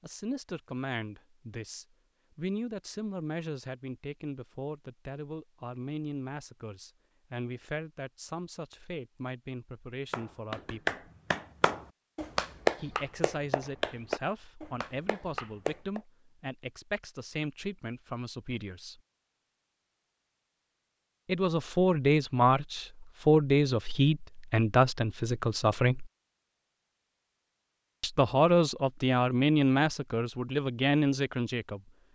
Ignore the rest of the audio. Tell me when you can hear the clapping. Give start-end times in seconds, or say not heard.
10.1-16.0.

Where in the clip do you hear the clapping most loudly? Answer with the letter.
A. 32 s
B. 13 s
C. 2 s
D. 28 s
B.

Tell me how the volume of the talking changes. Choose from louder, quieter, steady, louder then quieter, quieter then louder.
louder.